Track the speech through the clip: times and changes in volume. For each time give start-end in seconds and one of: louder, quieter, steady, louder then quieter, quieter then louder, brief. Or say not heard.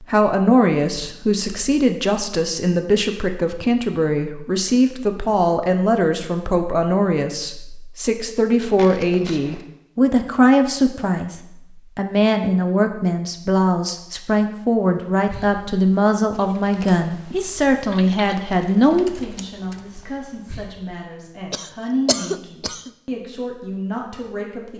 0.0-24.7 quieter.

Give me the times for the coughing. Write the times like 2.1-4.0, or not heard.
21.5-22.9.